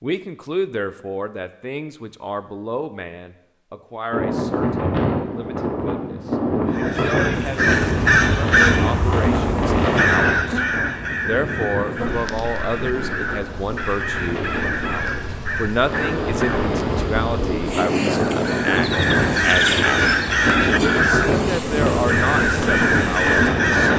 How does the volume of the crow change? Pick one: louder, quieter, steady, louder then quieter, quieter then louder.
quieter then louder.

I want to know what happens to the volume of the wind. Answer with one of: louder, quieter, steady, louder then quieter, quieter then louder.
quieter then louder.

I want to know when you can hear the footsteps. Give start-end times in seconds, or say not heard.
not heard.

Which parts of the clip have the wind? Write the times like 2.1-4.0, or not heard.
4.1-23.9.